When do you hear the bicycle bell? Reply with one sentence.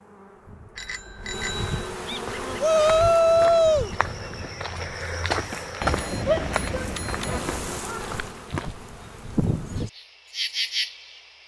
You can hear the bicycle bell from 0.8 to 1.9 s and from 5.8 to 7.8 s.